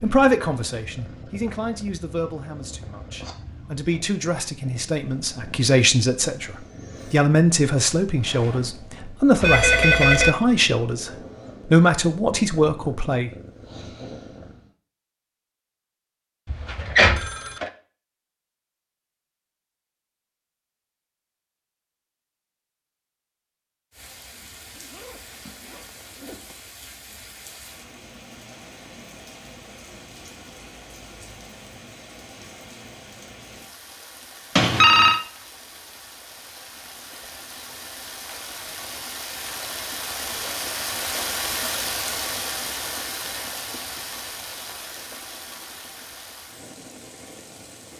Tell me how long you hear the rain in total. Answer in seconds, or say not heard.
24 s.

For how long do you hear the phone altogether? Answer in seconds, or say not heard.
3 s.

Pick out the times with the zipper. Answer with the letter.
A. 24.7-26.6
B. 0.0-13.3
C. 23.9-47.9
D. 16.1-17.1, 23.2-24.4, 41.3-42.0
A.